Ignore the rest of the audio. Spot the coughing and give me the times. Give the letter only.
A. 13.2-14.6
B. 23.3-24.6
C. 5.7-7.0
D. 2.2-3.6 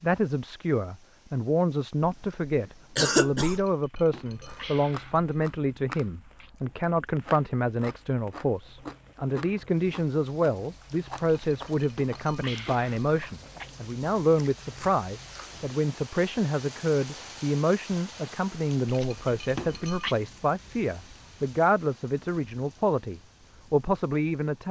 D.